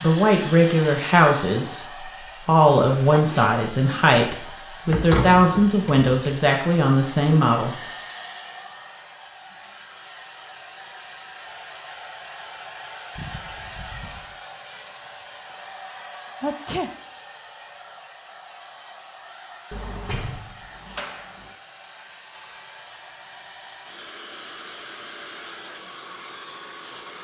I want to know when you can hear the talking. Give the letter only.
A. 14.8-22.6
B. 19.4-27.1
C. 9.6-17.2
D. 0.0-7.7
D.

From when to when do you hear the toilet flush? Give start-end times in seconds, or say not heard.
not heard.